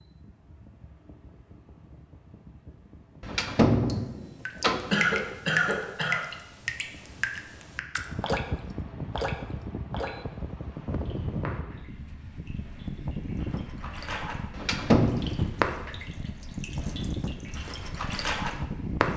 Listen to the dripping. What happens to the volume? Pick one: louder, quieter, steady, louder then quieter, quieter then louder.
quieter then louder.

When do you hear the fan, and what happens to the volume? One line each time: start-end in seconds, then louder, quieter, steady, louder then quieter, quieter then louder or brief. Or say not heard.
0.0-19.1 louder.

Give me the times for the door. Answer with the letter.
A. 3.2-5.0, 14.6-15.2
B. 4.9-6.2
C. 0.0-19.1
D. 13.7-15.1
A.